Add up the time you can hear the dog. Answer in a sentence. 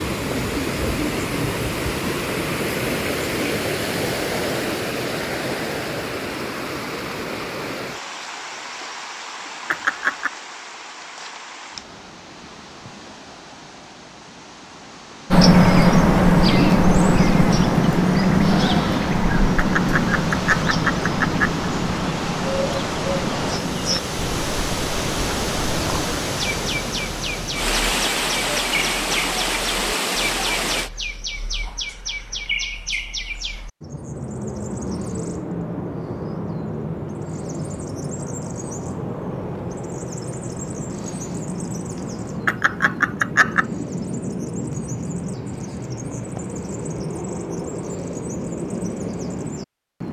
The dog can't be heard in this clip.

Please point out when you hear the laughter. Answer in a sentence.
You can hear the laughter from 9.7 to 10.3 s, from 19.6 to 21.6 s and from 42.5 to 43.6 s.